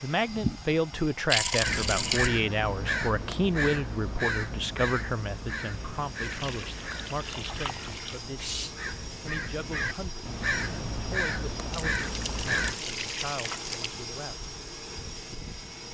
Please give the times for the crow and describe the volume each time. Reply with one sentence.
You can hear the crow from 1.6 to 12.8 s, getting quieter then louder.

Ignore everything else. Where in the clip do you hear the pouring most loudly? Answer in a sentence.
The volume of the pouring peaks at 1 second.